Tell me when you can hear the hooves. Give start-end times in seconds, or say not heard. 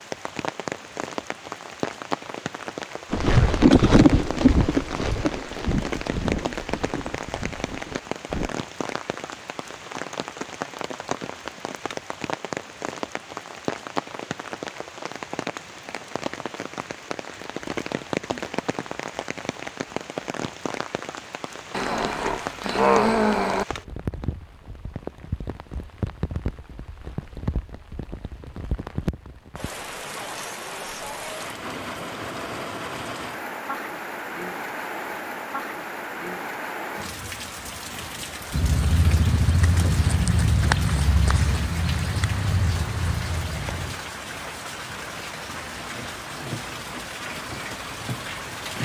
3.1-8.6, 38.5-44.0.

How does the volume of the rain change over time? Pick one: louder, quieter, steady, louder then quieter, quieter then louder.
steady.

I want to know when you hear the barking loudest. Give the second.
23 s.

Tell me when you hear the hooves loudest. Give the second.
4 s.